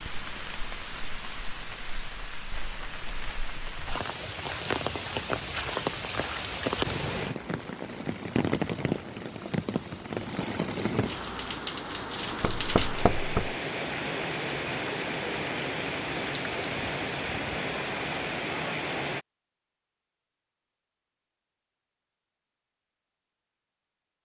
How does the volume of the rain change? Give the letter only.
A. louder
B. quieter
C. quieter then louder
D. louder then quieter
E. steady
A.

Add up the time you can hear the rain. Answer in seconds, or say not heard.
19 s.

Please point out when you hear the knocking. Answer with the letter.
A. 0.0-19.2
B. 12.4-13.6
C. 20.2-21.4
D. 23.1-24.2
B.